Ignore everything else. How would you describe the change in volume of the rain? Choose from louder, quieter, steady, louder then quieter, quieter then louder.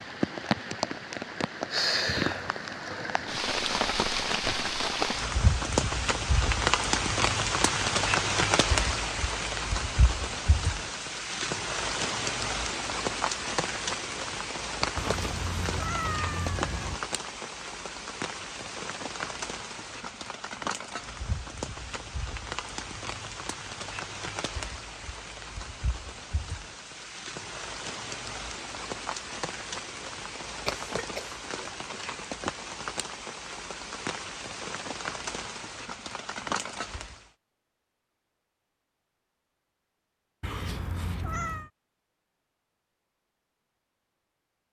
quieter.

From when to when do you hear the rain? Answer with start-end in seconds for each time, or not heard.
0.0-37.3.